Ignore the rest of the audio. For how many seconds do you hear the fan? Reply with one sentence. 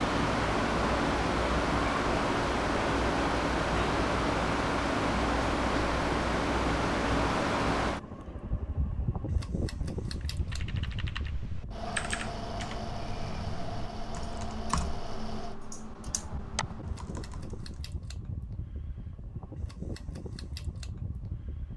The fan can be heard for 22 seconds in total.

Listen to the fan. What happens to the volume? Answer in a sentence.
The volume of the fan goes down.